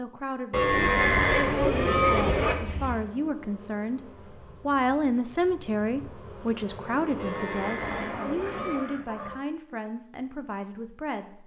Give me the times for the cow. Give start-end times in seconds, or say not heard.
0.5-2.5, 7.2-8.8.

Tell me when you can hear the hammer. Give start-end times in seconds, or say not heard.
not heard.